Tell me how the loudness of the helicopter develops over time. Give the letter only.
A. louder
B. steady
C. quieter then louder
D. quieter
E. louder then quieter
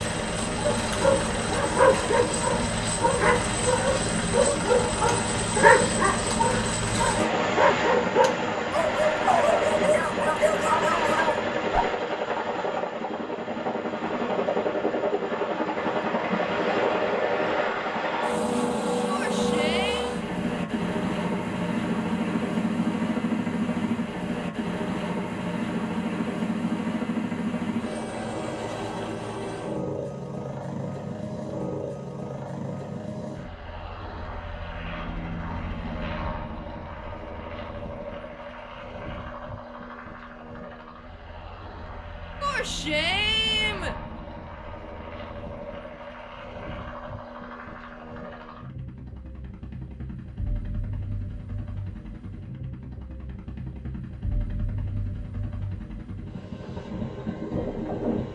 D.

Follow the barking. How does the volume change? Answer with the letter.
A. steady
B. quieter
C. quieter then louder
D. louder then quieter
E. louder
A.